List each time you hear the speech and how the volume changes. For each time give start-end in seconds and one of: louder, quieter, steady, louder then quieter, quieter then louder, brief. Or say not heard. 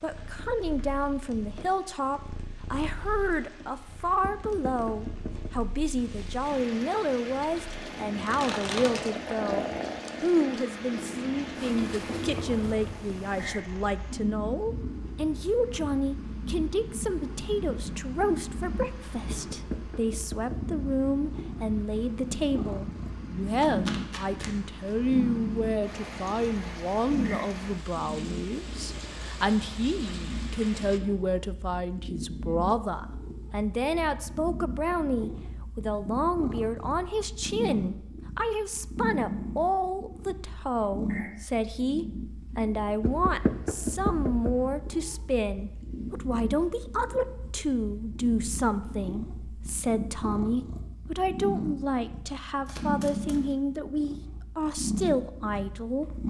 0.0-56.2 steady.